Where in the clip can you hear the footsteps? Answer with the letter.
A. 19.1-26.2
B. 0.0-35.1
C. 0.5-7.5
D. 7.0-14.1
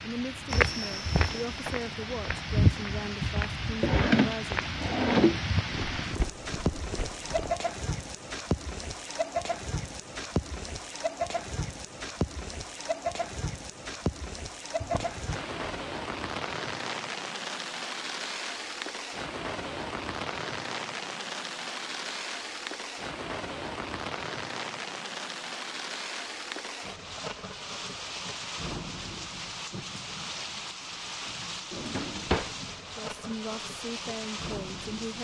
C.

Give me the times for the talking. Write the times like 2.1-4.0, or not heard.
0.0-4.7, 33.0-35.1.